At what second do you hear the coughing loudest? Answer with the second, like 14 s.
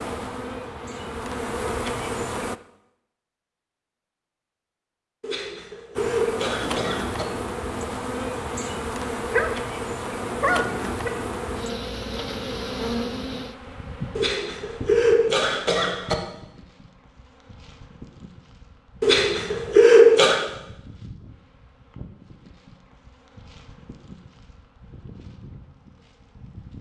20 s.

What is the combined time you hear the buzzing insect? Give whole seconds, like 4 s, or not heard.
23 s.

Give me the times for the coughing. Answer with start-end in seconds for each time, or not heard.
5.2-7.2, 14.2-16.1, 19.0-20.4.